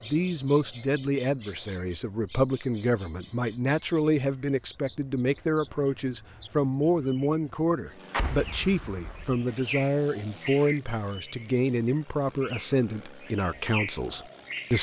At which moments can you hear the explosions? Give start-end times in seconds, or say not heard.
8.1-9.4.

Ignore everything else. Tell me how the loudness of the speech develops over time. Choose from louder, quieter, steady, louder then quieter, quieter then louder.
steady.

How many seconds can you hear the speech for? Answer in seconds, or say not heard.
15 s.